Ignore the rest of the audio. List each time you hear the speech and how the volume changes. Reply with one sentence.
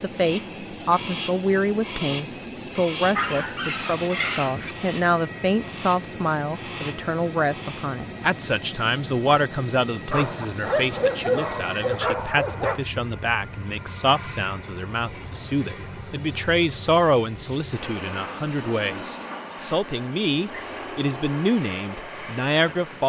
You can hear the speech from 0.0 to 23.0 s, at a steady volume.